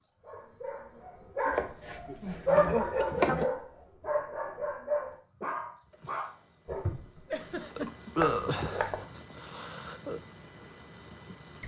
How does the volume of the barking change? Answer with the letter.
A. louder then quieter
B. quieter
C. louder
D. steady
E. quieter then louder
A.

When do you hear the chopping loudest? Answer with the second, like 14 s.
3 s.